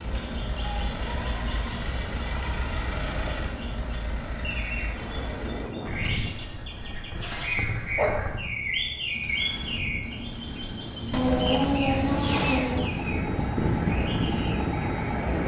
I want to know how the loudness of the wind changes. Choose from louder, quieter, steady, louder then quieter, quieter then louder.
quieter then louder.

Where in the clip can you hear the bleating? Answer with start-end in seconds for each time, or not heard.
0.6-2.9, 5.8-8.5, 11.1-12.8.